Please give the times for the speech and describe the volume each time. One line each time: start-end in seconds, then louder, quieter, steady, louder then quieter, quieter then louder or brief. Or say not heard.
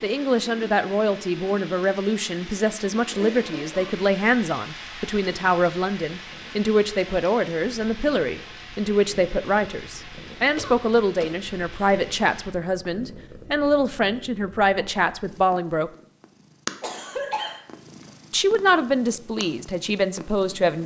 0.0-15.9 steady
18.3-20.8 brief.